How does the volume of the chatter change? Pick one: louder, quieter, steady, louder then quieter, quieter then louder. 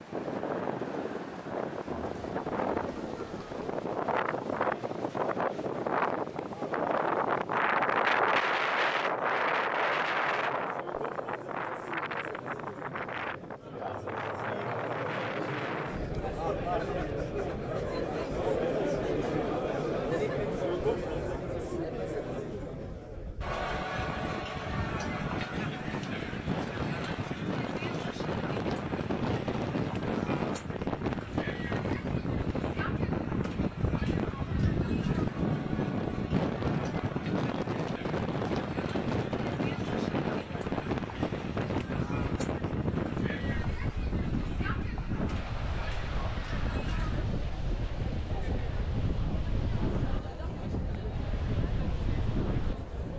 louder then quieter.